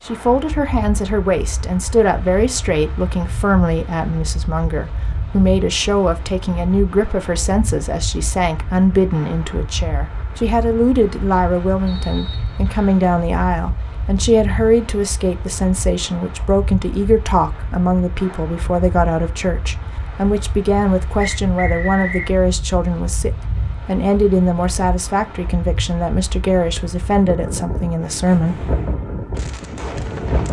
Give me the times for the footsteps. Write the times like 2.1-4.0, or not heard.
not heard.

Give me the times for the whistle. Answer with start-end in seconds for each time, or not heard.
11.8-13.0, 21.2-22.3.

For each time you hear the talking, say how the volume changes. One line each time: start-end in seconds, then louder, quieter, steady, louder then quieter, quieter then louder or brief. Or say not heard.
0.1-28.6 steady.